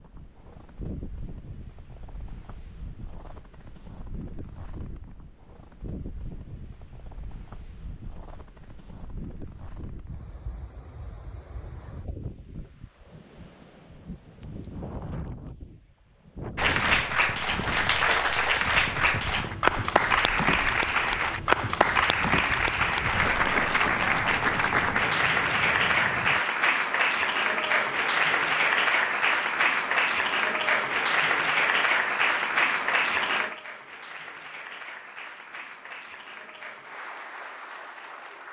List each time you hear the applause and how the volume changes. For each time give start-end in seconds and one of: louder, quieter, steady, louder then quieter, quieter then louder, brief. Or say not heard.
16.6-38.4 quieter.